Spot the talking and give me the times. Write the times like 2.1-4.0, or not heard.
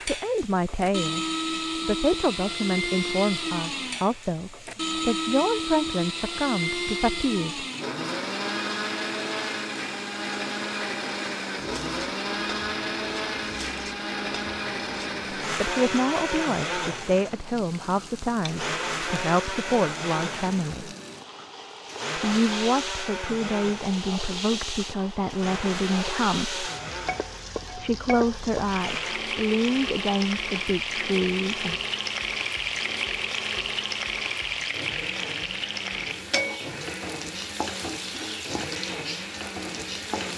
0.1-7.7, 15.6-20.9, 22.1-26.6, 27.8-31.8.